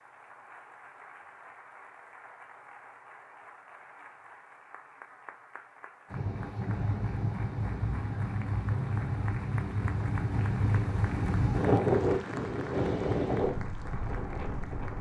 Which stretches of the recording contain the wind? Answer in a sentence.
You can hear the wind from 6.1 to 14.9 s.